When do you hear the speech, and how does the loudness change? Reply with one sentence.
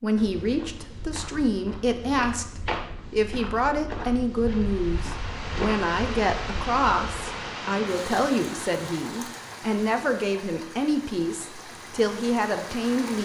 The speech can be heard from 0.0 to 13.2 s, at a steady volume.